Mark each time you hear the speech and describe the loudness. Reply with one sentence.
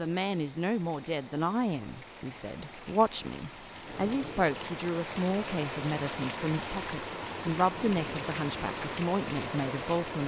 You can hear the speech from 0.0 to 10.2 s, at a steady volume.